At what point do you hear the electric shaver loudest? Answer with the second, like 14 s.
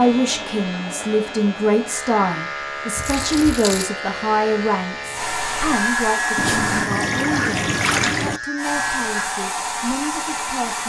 6 s.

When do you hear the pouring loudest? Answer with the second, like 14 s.
8 s.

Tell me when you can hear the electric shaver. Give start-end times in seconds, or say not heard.
0.0-9.5.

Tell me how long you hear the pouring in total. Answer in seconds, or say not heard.
3 s.